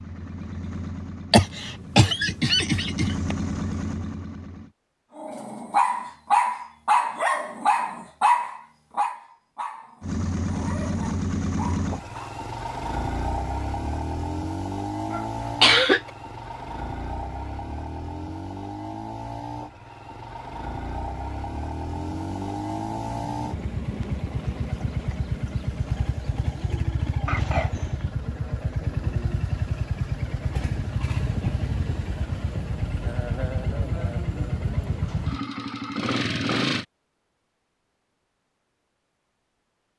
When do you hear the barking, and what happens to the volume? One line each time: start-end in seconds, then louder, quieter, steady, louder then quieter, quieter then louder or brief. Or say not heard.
5.2-12.3 quieter.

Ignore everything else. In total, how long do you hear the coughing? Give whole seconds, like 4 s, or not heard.
4 s.